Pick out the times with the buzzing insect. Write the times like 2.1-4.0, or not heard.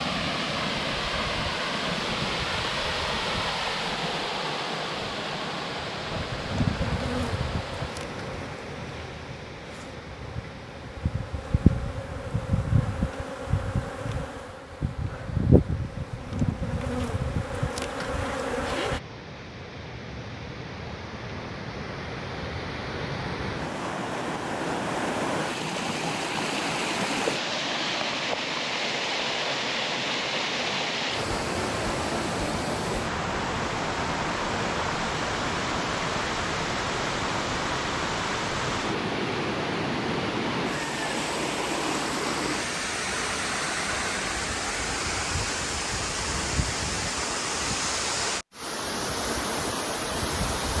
6.1-19.0.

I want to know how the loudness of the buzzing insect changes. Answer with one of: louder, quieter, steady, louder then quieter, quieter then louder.
quieter then louder.